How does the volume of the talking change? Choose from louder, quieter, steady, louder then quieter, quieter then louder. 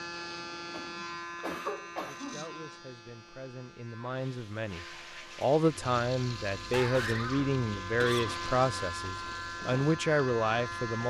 louder.